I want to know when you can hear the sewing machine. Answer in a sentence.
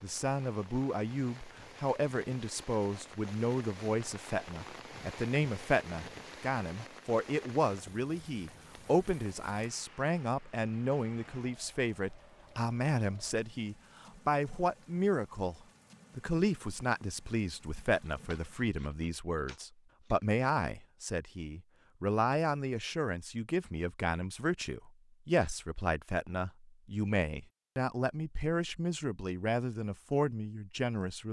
You can't hear the sewing machine here.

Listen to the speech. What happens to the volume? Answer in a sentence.
The volume of the speech stays about the same.